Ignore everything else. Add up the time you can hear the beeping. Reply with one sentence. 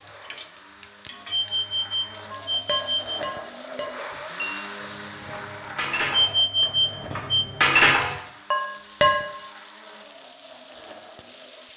The beeping can be heard for 3 seconds in total.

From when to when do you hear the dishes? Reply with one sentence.
You can hear the dishes from 2.3 to 9.2 s.